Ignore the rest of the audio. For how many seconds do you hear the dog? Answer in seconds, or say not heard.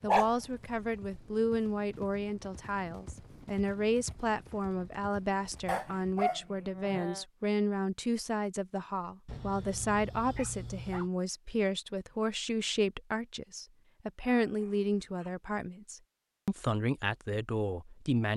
5 s.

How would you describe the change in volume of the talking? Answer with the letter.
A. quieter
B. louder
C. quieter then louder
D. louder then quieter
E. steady
E.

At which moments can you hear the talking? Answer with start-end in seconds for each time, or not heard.
0.0-18.3.